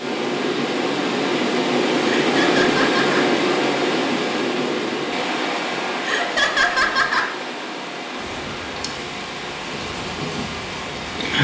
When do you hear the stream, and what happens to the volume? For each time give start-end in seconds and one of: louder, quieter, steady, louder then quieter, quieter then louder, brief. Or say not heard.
0.0-11.3 quieter.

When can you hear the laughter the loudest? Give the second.
7 s.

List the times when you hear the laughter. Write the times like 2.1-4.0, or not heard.
2.2-3.3, 6.0-7.3.